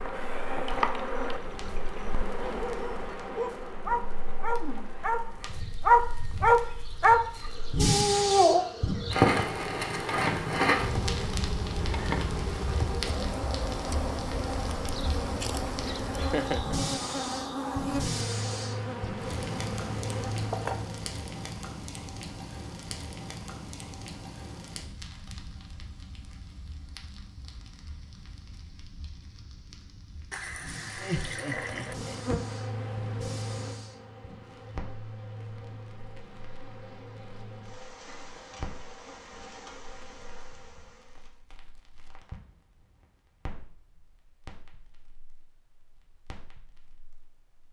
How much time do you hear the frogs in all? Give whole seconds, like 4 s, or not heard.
not heard.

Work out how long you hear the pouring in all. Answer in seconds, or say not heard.
3 s.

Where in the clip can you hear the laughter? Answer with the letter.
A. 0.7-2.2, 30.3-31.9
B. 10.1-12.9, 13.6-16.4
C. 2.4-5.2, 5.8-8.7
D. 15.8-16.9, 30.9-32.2
D.